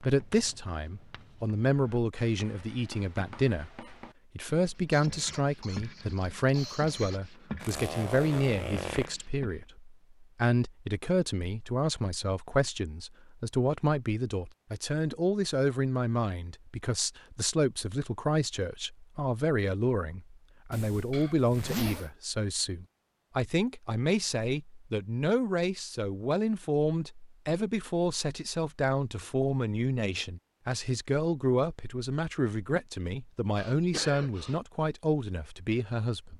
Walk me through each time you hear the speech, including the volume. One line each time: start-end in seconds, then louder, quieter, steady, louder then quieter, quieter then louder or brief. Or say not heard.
0.0-36.3 steady.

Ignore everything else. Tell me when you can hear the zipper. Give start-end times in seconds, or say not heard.
7.6-9.1, 20.7-22.1.